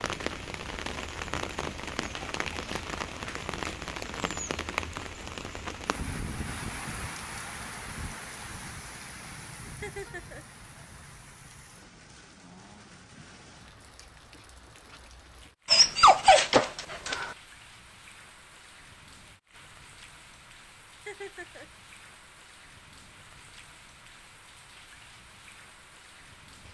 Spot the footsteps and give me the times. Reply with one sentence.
The footsteps can't be heard in this clip.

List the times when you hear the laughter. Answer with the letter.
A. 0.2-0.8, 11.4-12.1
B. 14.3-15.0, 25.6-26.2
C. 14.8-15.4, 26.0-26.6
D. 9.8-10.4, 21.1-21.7
D.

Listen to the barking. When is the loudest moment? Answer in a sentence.
The volume of the barking peaks at 16 seconds.